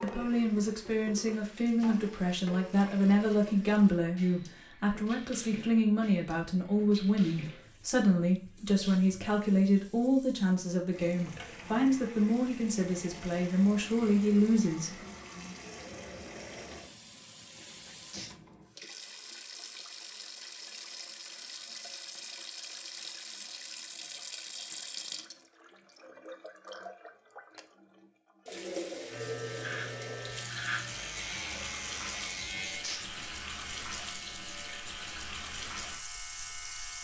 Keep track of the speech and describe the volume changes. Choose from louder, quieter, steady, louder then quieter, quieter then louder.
steady.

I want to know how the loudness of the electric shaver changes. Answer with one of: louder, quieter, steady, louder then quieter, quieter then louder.
quieter.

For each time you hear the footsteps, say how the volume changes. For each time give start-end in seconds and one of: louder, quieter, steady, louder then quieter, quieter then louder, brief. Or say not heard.
not heard.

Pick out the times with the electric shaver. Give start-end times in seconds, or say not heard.
29.1-37.0.